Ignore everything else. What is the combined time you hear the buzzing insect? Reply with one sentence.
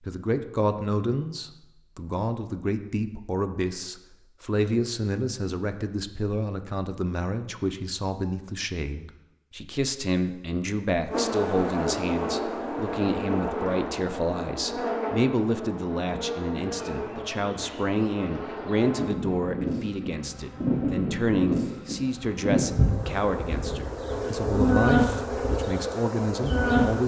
You can hear the buzzing insect for 16 seconds altogether.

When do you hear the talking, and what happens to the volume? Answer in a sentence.
You can hear the talking from 0.0 to 27.0 s, at a steady volume.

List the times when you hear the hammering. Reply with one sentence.
You can't hear the hammering here.